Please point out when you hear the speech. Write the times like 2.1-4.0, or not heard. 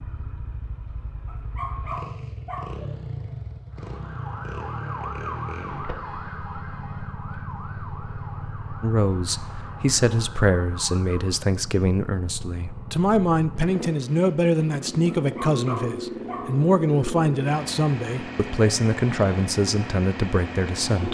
8.8-21.0.